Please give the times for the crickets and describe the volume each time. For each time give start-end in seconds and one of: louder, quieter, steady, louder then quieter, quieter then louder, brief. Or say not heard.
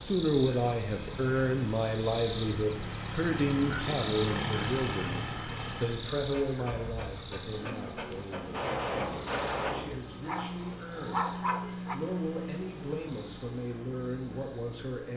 0.0-15.1 quieter.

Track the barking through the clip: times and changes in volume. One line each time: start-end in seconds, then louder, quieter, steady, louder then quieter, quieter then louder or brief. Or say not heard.
6.2-11.9 louder.